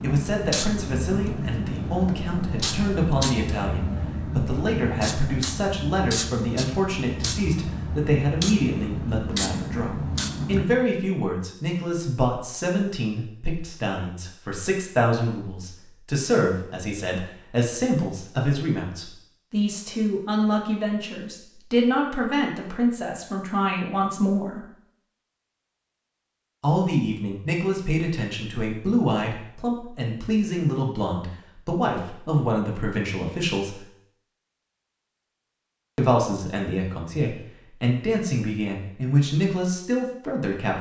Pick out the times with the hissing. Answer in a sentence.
You can hear the hissing from 0.0 to 10.7 s.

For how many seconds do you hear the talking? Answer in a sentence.
The talking can be heard for 37 seconds in total.